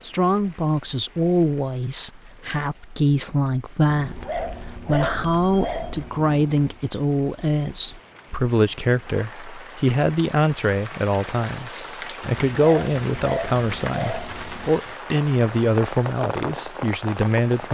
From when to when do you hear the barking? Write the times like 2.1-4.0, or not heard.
3.9-6.8, 12.2-14.7.